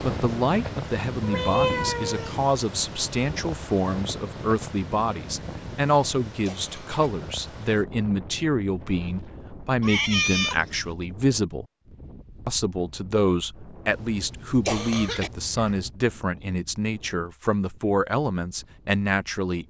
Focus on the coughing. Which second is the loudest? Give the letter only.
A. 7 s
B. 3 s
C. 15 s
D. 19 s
C.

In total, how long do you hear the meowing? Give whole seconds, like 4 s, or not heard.
4 s.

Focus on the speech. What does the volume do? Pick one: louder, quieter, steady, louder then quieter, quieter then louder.
steady.